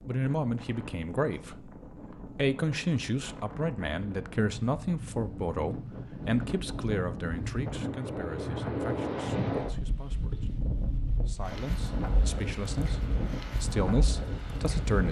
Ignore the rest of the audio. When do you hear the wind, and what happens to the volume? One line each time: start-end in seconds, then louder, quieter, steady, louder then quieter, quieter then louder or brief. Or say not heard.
0.0-15.0 louder.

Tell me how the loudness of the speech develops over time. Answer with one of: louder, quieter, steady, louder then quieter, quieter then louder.
quieter then louder.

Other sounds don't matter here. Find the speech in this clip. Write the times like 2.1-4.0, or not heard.
0.1-15.0.